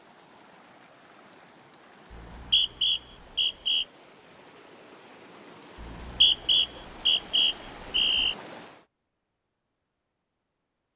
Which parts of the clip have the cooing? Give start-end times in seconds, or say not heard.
not heard.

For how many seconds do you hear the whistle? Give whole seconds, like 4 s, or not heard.
4 s.